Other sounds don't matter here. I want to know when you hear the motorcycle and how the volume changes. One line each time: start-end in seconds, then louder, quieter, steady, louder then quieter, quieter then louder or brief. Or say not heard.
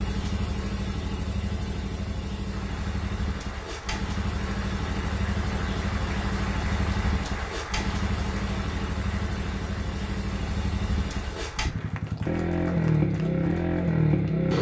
0.0-14.5 louder.